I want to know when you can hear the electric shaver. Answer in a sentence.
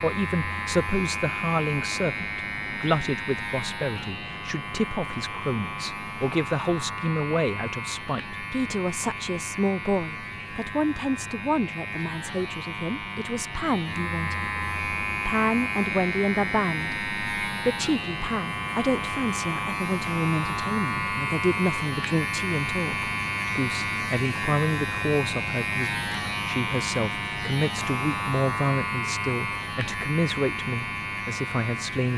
You can hear the electric shaver from 0.0 to 32.1 s.